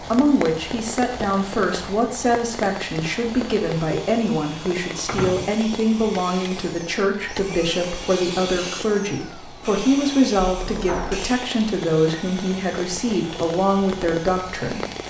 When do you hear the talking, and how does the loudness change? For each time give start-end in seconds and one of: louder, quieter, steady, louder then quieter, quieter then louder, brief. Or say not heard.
0.0-14.8 steady.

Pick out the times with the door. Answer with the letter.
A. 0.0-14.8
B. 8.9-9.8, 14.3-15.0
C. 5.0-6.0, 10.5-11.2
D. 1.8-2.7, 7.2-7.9
C.